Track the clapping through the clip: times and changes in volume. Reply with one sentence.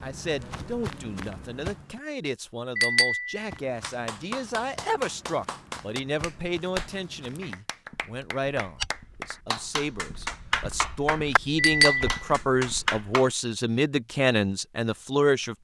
The clapping can be heard from 3.8 to 13.3 s, getting louder.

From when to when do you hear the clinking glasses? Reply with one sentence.
You can hear the clinking glasses from 2.8 to 3.5 s and from 11.6 to 12.1 s.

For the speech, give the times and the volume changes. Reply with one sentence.
You can hear the speech from 0.0 to 15.5 s, getting louder.